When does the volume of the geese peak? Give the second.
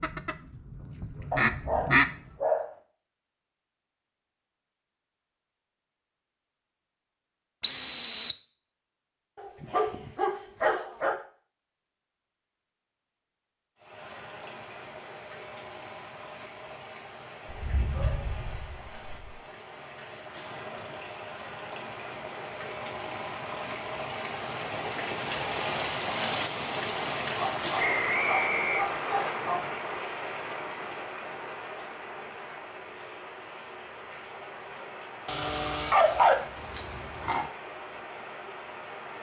2 s.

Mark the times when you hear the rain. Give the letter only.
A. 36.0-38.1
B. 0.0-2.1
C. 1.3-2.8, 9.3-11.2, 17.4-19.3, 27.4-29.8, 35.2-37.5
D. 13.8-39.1
D.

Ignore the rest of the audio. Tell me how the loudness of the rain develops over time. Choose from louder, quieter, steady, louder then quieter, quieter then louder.
louder then quieter.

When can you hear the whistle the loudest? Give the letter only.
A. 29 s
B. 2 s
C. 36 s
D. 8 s
D.